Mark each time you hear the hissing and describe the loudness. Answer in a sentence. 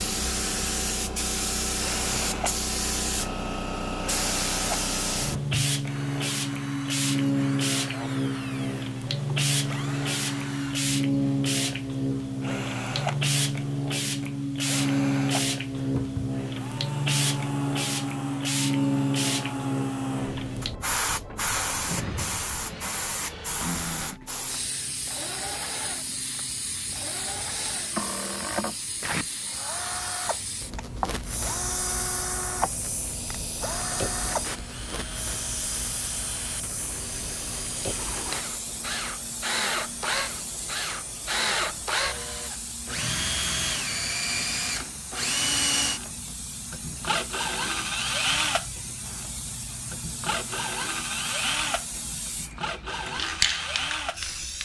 The hissing can be heard from 0.0 to 54.6 s, getting quieter.